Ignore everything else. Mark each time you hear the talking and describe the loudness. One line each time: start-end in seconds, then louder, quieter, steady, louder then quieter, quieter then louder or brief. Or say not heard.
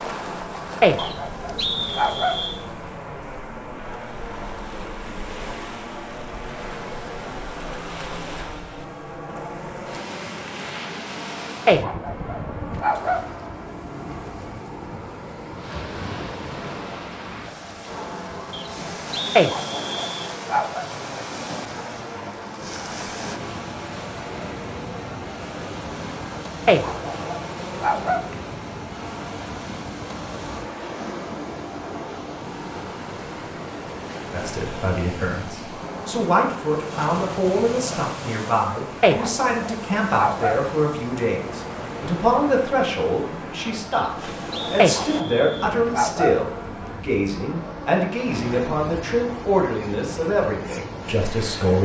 34.3-51.7 steady.